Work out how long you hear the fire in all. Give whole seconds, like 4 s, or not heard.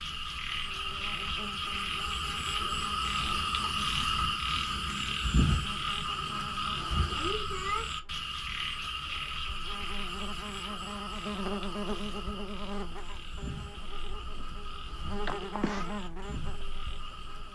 not heard.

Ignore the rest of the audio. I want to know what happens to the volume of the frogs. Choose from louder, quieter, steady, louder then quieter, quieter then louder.
quieter.